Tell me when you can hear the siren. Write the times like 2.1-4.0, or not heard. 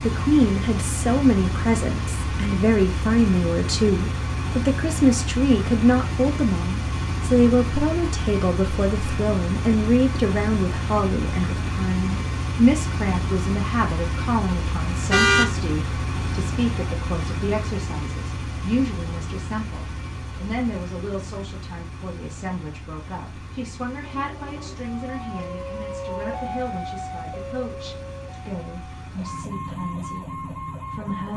24.0-31.3.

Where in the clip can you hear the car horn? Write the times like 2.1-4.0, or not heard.
15.1-15.5.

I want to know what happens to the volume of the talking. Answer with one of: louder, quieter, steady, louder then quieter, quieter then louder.
quieter.